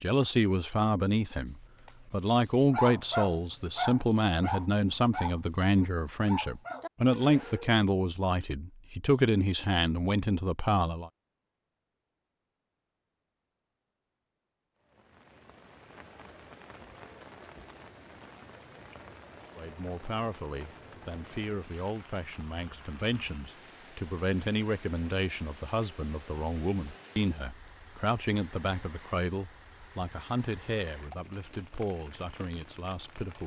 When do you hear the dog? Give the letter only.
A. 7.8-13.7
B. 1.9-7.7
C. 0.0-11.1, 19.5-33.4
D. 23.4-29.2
B.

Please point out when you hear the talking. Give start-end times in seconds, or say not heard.
0.0-11.1, 19.5-33.4.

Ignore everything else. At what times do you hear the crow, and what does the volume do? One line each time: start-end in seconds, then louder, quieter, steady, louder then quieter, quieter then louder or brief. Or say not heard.
not heard.